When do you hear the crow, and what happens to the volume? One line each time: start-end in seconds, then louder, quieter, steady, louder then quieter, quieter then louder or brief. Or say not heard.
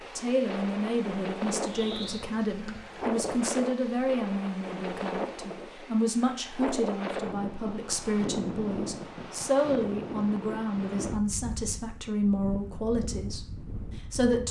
not heard.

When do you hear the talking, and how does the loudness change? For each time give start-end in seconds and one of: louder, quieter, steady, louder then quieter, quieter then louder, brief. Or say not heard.
0.1-14.4 steady.